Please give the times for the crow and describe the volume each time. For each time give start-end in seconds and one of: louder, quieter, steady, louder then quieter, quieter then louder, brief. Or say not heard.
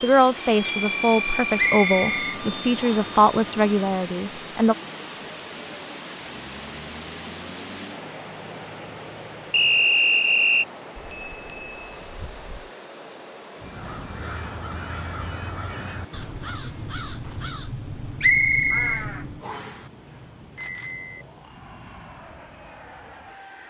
13.6-19.6 steady.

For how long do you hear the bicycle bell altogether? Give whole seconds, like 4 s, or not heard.
4 s.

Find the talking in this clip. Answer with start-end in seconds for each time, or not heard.
0.0-4.8.